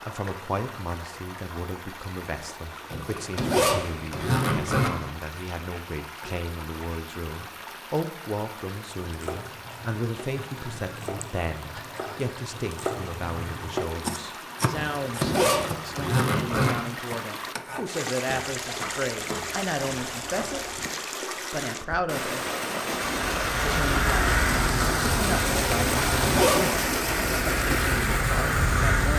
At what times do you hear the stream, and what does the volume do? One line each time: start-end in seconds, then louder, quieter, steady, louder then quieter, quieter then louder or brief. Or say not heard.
0.0-29.1 louder.